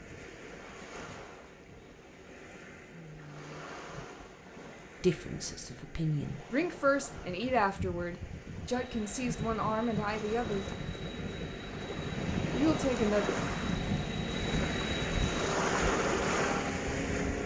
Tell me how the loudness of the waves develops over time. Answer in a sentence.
The loudness of the waves goes up.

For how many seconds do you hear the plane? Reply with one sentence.
You can hear the plane for 9 seconds altogether.